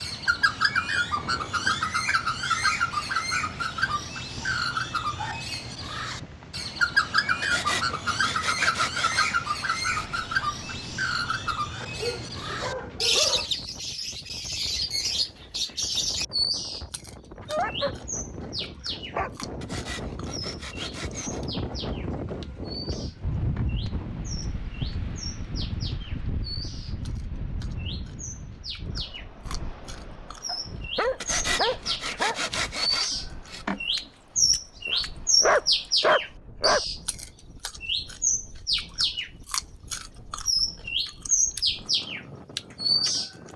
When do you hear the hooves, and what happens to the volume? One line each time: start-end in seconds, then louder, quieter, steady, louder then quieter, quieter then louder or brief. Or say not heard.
not heard.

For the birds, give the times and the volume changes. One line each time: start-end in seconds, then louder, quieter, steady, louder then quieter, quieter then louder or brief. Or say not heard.
0.0-43.4 quieter then louder.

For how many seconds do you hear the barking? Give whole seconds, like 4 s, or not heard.
9 s.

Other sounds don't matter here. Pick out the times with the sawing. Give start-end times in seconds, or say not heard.
7.4-10.2, 19.6-21.4, 31.2-33.6.